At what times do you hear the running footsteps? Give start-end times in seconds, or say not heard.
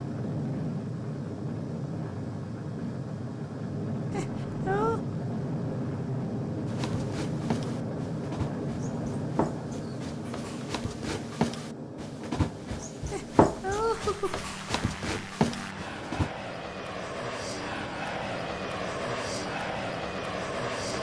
6.7-16.3.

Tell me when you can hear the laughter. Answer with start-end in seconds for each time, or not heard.
4.1-5.0, 13.1-14.4.